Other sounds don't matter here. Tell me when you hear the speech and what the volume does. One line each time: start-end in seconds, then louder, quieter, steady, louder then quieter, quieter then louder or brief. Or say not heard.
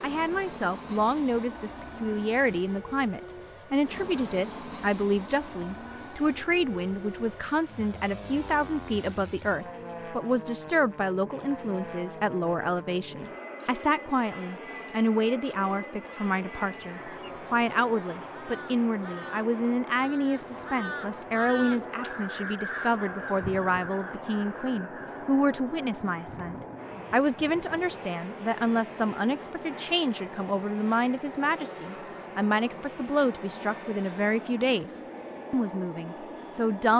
0.0-36.9 steady.